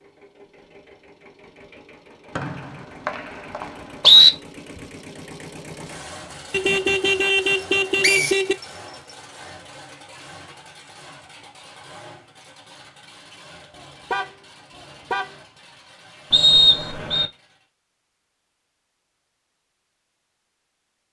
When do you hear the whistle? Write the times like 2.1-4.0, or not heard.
2.4-4.3, 8.0-8.4, 16.3-17.3.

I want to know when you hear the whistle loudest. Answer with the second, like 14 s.
4 s.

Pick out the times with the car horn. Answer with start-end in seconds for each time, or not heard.
6.5-8.6, 13.8-15.3.